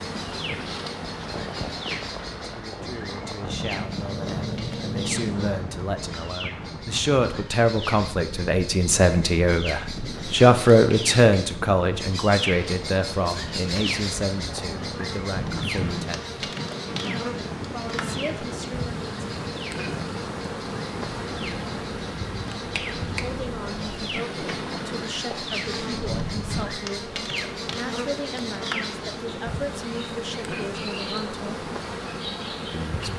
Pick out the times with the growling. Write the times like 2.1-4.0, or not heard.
4.0-5.6.